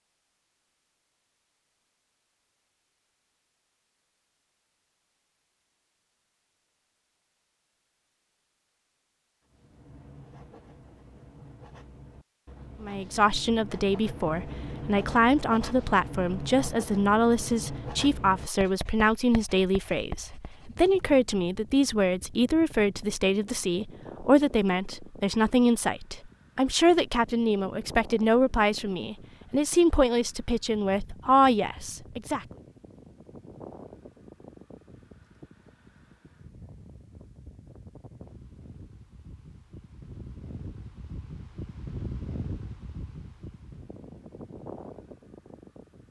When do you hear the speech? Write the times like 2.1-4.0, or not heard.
12.8-32.5.